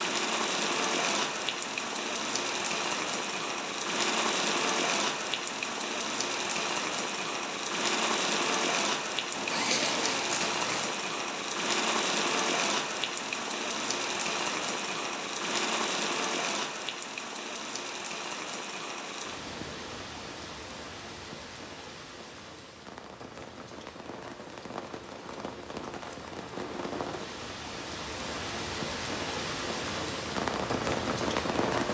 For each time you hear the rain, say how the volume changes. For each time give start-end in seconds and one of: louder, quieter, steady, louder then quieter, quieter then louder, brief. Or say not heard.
0.0-31.8 quieter then louder.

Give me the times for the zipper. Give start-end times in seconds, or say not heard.
9.3-10.9.